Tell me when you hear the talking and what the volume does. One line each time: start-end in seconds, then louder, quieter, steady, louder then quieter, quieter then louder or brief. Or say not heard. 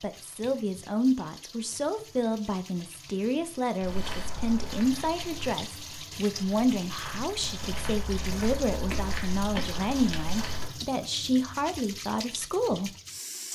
0.0-12.9 steady.